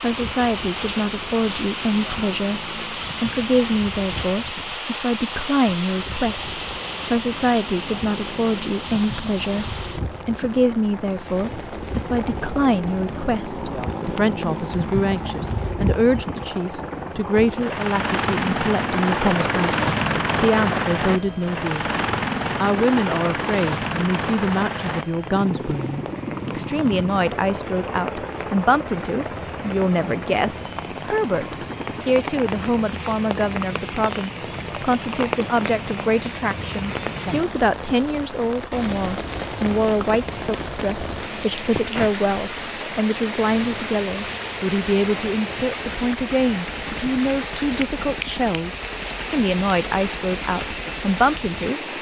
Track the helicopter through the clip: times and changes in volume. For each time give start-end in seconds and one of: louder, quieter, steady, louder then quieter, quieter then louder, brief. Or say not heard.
0.0-51.9 louder then quieter.